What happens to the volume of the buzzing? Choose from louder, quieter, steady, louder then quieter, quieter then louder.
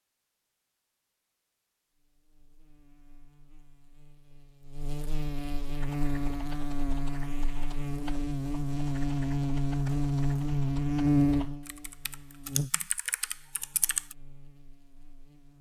louder then quieter.